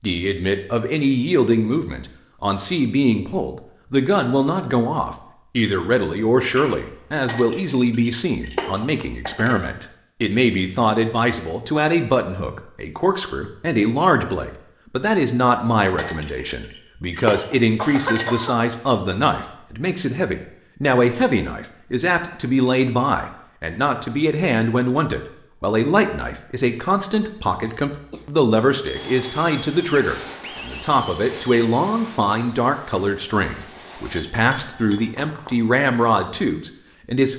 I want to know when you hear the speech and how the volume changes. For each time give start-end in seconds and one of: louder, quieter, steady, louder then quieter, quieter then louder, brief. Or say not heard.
0.0-37.3 steady.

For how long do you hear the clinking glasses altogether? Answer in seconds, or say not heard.
6 s.